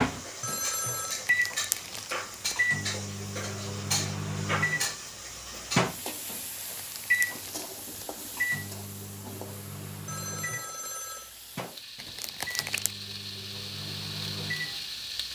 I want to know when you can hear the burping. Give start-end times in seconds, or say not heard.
not heard.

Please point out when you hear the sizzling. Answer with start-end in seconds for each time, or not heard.
0.0-15.2.